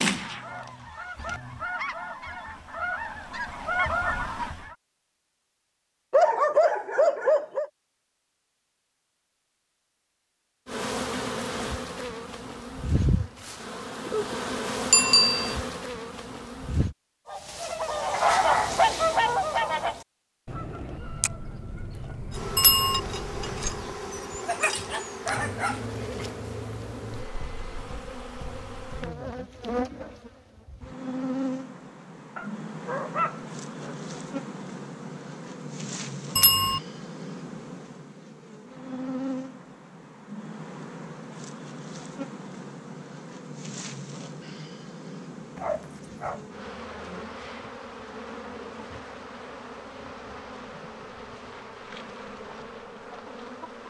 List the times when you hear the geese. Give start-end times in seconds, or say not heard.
0.0-4.8, 17.2-24.0.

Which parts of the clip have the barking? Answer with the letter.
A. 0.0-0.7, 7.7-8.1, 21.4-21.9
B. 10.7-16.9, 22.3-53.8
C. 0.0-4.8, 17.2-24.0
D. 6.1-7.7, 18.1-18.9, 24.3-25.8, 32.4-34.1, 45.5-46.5
D.